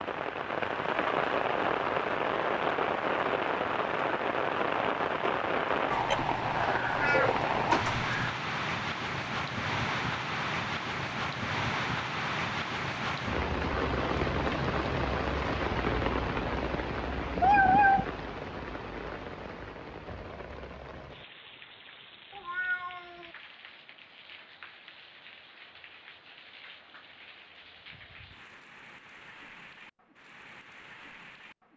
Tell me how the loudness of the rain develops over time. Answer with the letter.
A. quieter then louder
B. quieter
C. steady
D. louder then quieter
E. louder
B.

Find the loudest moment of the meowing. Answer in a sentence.
The volume of the meowing peaks at 18 seconds.